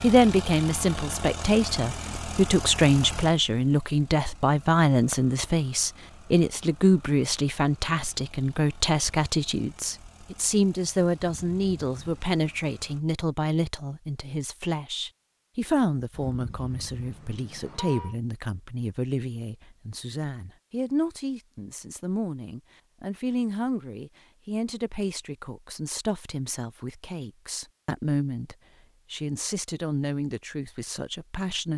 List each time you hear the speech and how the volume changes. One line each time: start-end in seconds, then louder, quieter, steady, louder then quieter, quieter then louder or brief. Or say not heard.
0.0-31.7 quieter.